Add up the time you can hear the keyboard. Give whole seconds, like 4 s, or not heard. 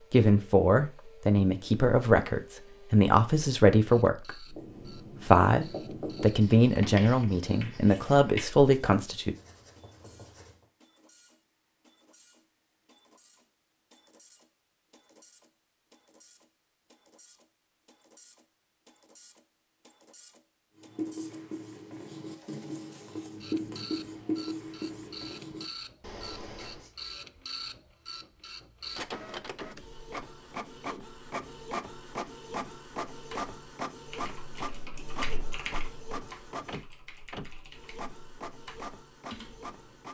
7 s.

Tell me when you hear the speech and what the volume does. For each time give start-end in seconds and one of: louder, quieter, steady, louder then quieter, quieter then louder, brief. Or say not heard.
0.1-9.3 steady.